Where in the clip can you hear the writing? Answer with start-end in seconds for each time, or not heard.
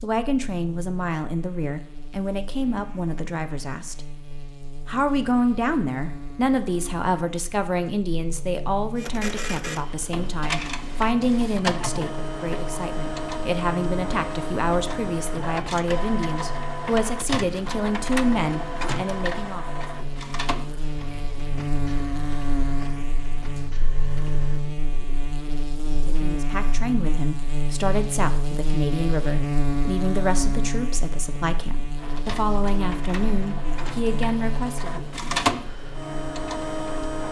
not heard.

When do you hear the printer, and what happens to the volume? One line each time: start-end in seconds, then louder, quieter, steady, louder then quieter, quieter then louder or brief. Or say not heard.
8.9-24.6 quieter
31.9-37.2 louder then quieter.